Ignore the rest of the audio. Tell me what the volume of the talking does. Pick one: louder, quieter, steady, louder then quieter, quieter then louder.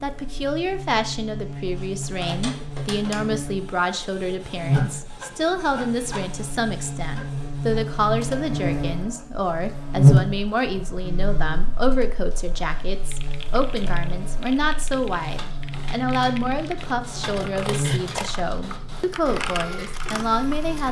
steady.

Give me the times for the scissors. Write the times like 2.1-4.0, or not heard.
17.2-18.4.